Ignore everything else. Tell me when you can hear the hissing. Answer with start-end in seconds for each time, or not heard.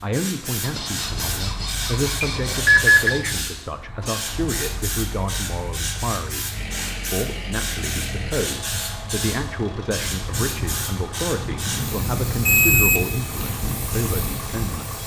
0.0-15.0.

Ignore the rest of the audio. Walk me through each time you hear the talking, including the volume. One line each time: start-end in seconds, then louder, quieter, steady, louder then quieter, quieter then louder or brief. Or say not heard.
0.0-15.0 steady.